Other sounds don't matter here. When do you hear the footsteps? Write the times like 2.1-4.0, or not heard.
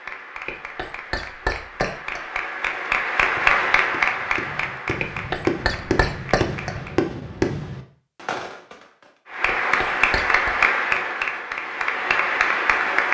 not heard.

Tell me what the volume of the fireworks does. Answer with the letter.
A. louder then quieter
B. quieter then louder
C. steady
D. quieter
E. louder
A.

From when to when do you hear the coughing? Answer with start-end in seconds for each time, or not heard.
0.5-2.2, 5.0-6.7, 9.4-10.5.